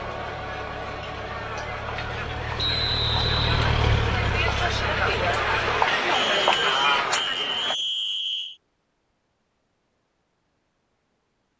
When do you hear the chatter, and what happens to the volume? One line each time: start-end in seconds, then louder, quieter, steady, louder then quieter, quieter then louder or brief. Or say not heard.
0.0-7.8 louder.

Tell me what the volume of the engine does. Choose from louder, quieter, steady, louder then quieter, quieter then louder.
louder then quieter.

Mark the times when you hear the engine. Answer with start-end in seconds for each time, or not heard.
0.0-5.8.